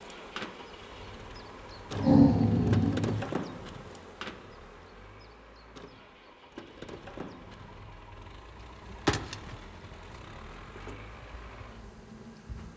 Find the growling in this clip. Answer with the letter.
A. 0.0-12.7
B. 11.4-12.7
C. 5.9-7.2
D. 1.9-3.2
D.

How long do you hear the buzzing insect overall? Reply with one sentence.
The buzzing insect can be heard for 13 seconds in total.